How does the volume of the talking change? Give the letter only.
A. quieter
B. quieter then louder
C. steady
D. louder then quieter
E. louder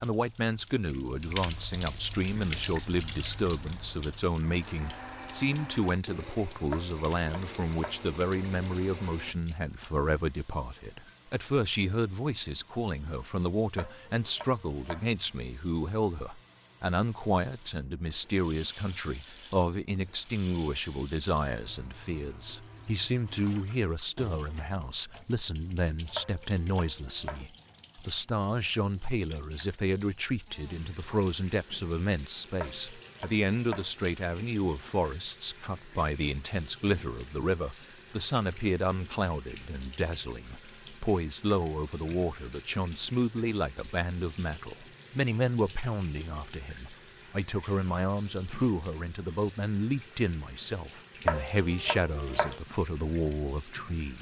C.